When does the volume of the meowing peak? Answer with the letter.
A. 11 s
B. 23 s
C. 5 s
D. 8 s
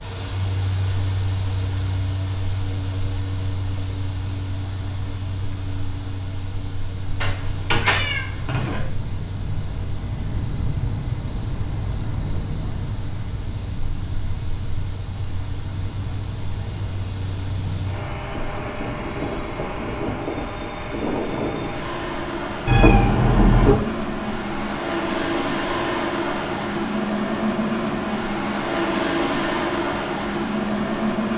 B.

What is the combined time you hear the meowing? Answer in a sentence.
The meowing can be heard for 3 seconds in total.